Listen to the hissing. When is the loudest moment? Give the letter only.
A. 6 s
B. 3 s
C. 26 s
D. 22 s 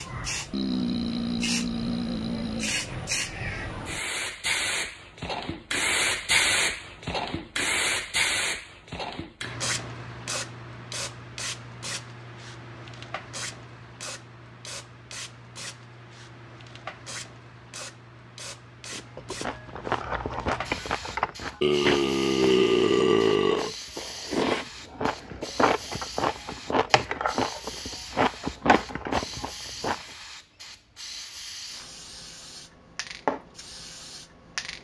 A.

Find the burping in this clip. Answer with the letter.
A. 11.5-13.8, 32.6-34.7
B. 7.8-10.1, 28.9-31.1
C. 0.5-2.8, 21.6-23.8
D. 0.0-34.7
C.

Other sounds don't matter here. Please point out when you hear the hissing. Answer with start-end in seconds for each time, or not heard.
0.0-34.7.